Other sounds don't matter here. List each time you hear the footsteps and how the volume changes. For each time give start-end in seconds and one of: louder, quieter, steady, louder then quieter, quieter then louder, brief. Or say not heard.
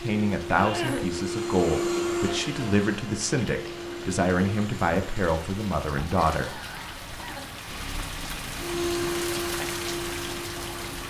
not heard.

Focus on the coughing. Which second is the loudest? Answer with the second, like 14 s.
1 s.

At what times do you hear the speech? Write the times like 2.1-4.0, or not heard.
0.0-6.5.